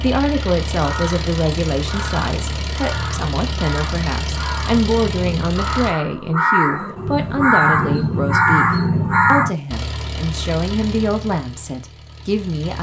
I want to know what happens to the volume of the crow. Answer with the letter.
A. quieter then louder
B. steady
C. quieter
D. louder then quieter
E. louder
E.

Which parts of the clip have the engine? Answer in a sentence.
The engine can be heard from 0.0 to 5.9 s and from 9.7 to 12.7 s.